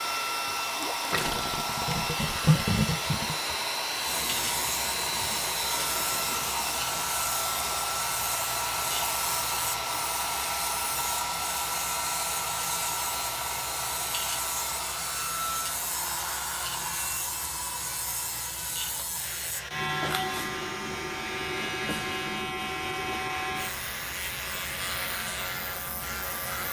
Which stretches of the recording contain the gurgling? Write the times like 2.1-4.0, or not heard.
0.8-7.1.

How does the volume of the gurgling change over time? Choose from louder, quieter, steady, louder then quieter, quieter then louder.
louder then quieter.